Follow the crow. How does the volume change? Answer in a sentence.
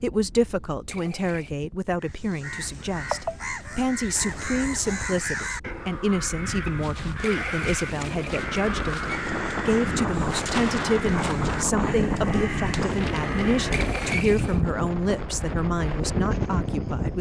The loudness of the crow stays about the same.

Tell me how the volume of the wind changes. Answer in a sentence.
The loudness of the wind goes up.